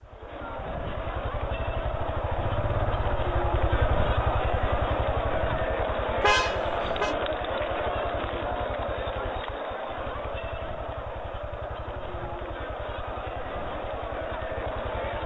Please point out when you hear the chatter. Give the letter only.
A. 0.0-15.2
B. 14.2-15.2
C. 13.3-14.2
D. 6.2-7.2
A.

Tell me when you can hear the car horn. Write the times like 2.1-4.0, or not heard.
6.2-7.2.